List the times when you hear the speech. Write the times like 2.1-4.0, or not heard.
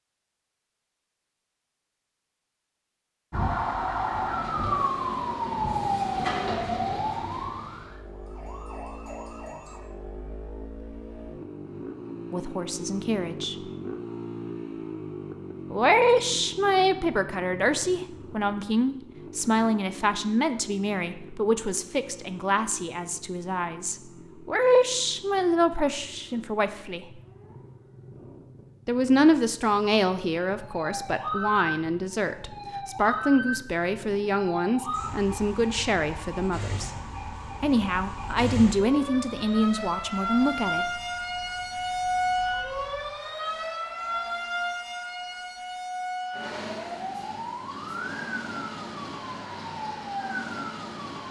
12.3-13.6, 15.7-27.1, 28.9-36.9, 37.6-40.9.